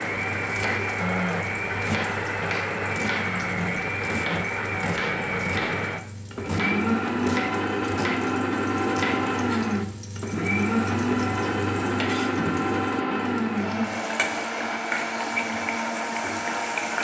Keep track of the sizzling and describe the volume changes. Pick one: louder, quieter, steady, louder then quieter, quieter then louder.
steady.